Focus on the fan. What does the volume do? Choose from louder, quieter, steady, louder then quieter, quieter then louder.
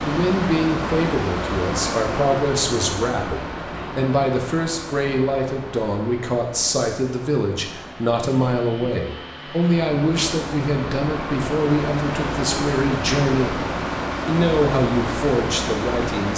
quieter then louder.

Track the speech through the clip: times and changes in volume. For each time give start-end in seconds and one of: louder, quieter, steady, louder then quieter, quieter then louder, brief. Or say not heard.
0.0-16.3 steady.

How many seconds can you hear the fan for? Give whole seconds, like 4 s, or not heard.
16 s.